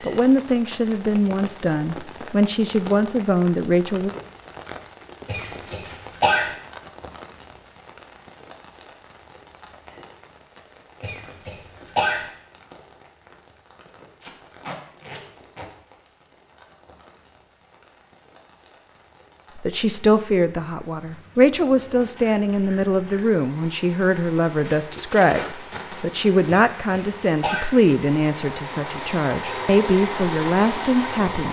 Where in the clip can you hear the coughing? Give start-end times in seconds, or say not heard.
5.2-6.5, 11.0-12.2, 26.4-27.7.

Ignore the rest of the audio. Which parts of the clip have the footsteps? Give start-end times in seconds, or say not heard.
not heard.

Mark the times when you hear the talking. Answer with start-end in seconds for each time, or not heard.
0.0-4.1, 19.6-31.4.